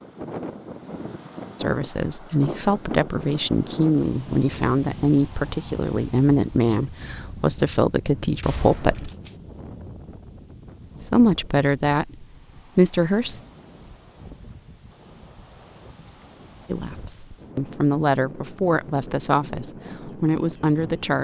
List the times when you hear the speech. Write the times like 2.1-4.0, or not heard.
1.6-9.1, 11.0-13.4, 16.6-21.1.